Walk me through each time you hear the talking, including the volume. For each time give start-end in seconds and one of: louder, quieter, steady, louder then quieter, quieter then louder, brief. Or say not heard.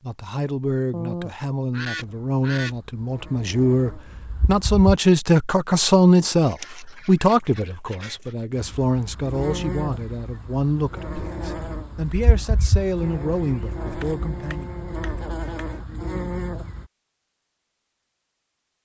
0.0-14.7 louder then quieter.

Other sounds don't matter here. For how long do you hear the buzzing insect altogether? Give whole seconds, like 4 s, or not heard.
11 s.